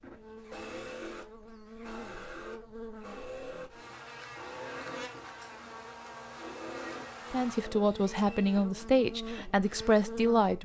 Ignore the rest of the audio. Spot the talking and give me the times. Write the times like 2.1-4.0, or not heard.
7.3-10.6.